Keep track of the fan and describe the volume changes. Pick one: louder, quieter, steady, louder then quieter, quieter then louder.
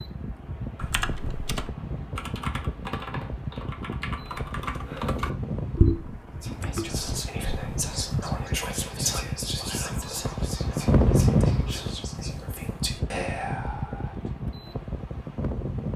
louder then quieter.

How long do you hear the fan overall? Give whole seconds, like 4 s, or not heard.
16 s.